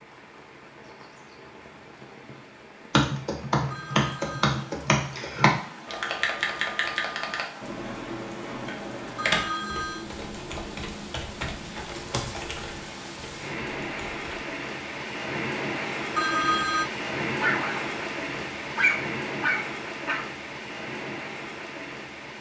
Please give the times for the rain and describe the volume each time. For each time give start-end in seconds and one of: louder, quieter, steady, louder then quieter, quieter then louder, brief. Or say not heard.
0.0-22.3 louder.